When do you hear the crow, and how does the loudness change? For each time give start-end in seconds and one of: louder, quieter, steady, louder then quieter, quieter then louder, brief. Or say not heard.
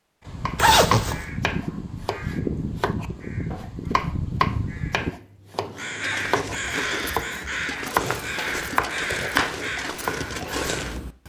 0.2-11.0 steady.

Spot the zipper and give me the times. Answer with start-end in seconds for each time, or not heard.
0.6-1.2, 8.0-8.6.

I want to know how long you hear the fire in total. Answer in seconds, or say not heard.
not heard.